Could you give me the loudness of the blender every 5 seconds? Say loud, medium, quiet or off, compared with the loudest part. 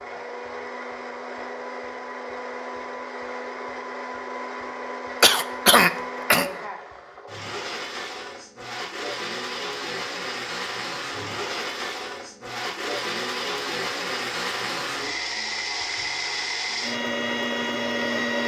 medium, medium, loud, loud.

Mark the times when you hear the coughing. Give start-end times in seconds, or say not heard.
5.2-6.5.